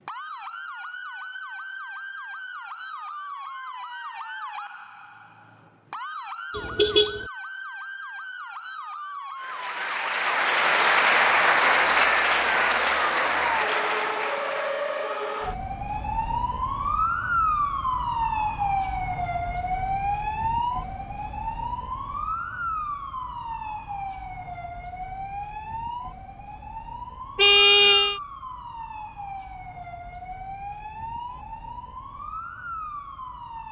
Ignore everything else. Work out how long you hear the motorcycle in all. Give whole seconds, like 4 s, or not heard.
not heard.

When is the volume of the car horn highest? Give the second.
28 s.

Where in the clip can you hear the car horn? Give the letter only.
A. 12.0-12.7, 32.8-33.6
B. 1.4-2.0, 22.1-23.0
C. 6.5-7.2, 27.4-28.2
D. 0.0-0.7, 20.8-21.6
C.